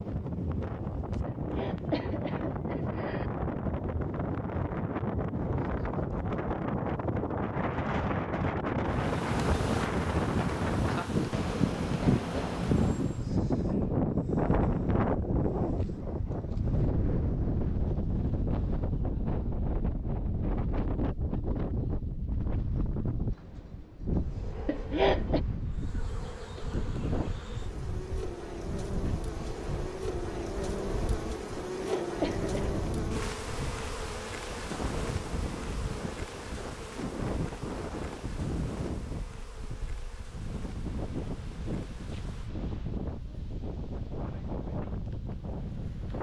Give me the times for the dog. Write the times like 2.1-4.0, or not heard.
not heard.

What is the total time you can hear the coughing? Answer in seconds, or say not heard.
4 s.